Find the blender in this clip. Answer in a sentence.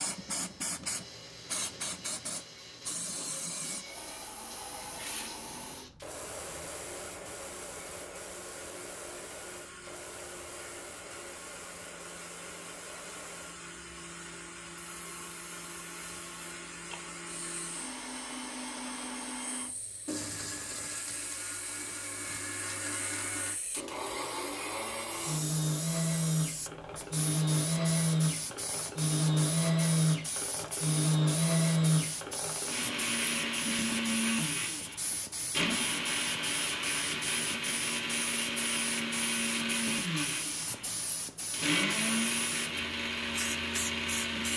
The blender can be heard from 0.0 to 44.5 s.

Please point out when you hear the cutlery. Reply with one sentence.
You can't hear the cutlery here.